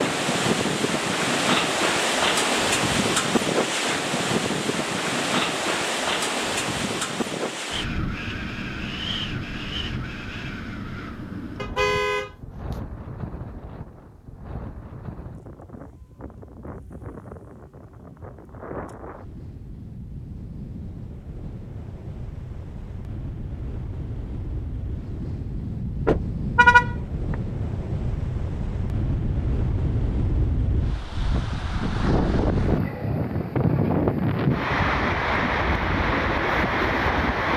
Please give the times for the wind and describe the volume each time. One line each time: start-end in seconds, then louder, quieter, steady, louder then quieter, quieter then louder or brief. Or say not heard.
0.0-37.5 quieter then louder.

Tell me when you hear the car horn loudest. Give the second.
27 s.